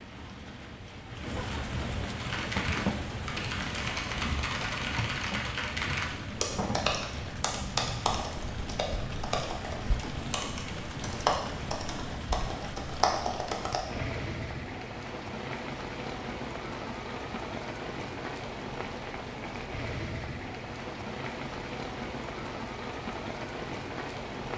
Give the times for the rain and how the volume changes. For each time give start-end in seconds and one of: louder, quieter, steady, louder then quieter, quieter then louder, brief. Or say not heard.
0.0-24.5 steady.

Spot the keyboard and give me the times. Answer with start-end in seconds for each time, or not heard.
2.1-13.8.